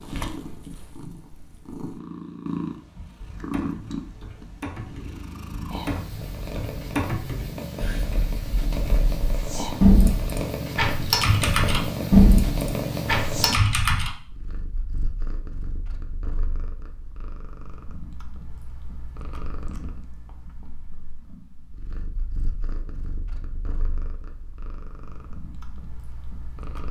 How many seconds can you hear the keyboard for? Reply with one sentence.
The keyboard can be heard for 11 seconds in total.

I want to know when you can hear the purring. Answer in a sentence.
The purring can be heard from 0.0 to 26.8 s.